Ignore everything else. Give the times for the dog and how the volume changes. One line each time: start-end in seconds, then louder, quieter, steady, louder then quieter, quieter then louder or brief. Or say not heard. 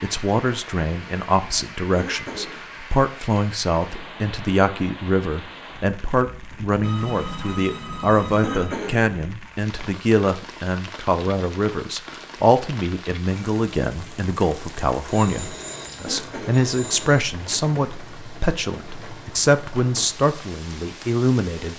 not heard.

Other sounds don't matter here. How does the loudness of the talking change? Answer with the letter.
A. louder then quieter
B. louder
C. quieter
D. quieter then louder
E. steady
E.